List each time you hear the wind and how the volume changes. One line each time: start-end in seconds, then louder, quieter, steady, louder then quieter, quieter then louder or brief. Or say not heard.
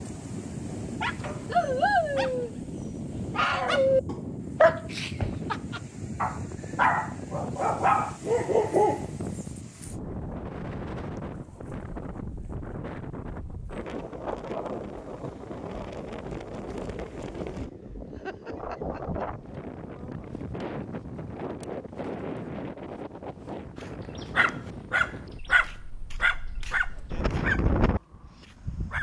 0.0-28.9 steady.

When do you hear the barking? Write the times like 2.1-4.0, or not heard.
1.0-9.9, 23.8-28.9.